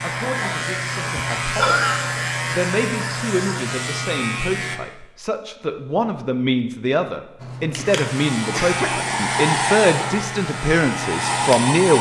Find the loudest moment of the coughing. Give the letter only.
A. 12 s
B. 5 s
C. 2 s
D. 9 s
C.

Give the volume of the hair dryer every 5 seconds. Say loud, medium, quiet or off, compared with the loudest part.
off, loud, loud.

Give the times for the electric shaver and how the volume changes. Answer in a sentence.
You can hear the electric shaver from 0.0 to 4.8 s, at a steady volume; and from 7.3 to 11.8 s, at a steady volume.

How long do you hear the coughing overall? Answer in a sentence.
You can hear the coughing for 2 seconds altogether.